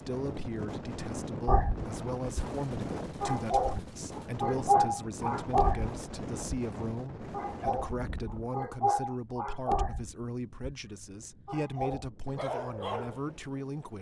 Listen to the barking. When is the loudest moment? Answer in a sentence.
The loudest moment of the barking is at 5 seconds.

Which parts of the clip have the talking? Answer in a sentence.
You can hear the talking from 0.0 to 13.9 s.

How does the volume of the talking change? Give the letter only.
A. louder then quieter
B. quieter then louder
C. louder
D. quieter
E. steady
E.